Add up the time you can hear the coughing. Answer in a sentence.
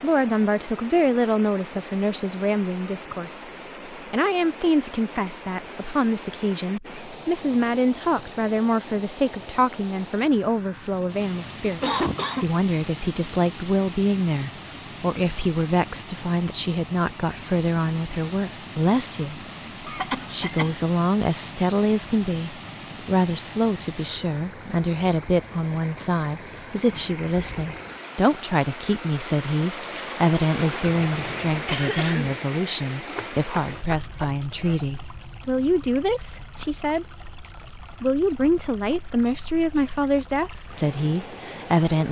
The coughing can be heard for 4 seconds in total.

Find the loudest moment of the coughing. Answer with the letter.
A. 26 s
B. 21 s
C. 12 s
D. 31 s
C.